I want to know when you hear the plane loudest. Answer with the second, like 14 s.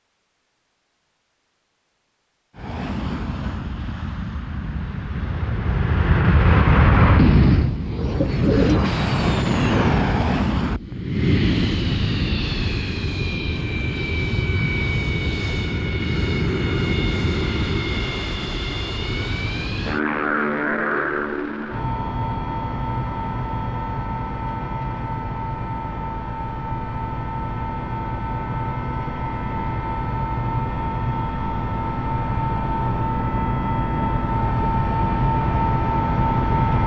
7 s.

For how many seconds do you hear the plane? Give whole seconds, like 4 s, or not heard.
34 s.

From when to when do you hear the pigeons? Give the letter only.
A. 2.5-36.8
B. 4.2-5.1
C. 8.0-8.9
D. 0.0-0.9
C.